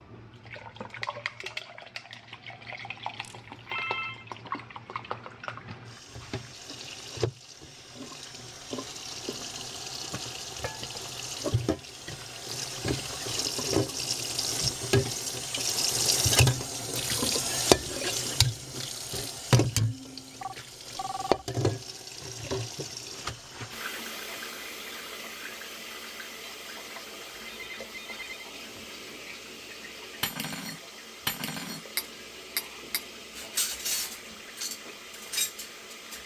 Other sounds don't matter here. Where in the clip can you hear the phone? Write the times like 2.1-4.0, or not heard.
3.1-4.2, 20.4-21.4, 27.4-28.5.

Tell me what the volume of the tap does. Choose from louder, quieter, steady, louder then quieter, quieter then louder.
louder then quieter.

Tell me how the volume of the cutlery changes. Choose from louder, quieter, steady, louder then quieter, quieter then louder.
steady.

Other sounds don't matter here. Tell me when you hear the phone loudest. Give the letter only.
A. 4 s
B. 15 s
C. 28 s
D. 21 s
A.